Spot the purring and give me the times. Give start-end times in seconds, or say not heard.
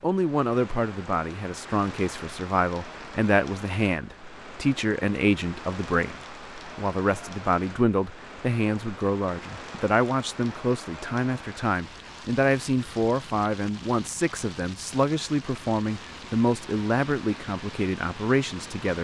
not heard.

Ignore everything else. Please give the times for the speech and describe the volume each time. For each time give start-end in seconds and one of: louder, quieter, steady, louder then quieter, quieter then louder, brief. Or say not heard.
0.0-19.0 steady.